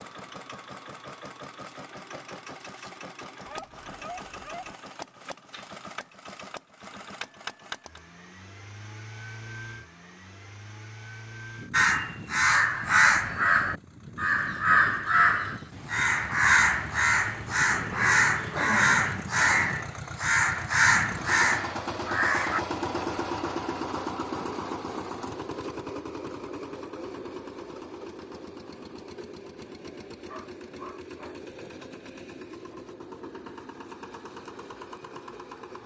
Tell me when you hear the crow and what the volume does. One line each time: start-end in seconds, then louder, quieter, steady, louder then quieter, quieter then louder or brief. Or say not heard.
11.7-22.6 steady.